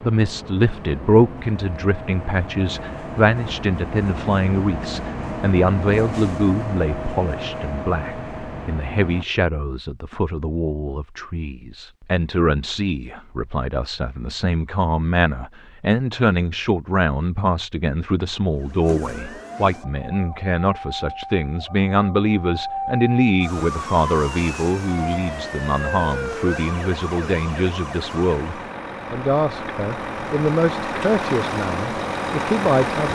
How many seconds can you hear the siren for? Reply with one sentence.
You can hear the siren for 10 seconds altogether.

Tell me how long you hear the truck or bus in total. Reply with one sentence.
The truck or bus can be heard for 19 seconds in total.